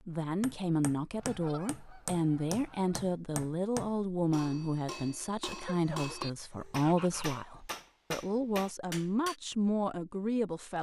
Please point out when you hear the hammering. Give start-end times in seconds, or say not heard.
0.4-9.3.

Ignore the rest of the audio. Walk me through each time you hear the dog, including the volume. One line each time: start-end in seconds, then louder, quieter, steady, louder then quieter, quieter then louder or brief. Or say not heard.
not heard.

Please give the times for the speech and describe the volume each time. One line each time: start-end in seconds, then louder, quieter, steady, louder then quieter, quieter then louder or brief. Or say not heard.
0.1-10.7 steady.